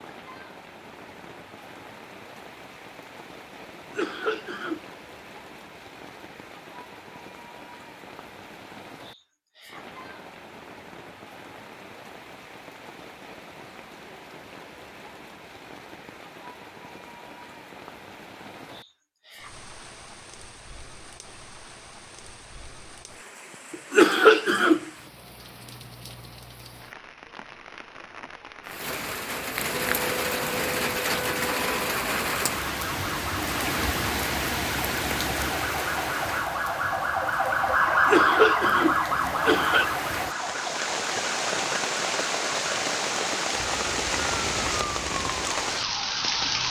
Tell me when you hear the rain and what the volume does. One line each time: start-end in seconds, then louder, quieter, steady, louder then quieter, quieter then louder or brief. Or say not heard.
0.0-46.6 louder.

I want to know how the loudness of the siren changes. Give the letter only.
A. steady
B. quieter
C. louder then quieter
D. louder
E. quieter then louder
C.